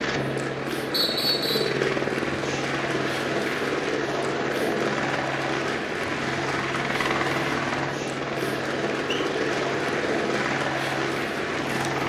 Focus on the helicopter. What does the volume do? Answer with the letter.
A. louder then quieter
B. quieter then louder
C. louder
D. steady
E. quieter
D.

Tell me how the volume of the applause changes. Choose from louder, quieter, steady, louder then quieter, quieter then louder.
steady.